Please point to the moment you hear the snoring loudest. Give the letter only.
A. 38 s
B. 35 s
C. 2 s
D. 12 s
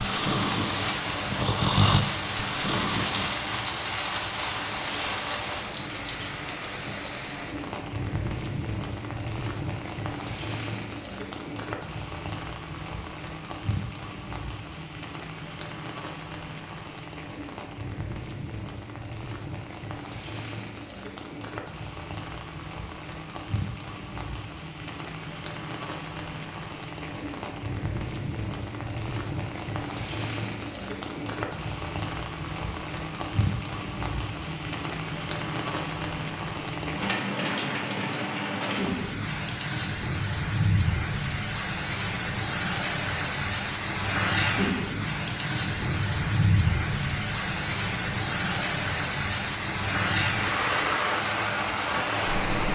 C.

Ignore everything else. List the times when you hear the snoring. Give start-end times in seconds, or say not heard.
0.0-3.4.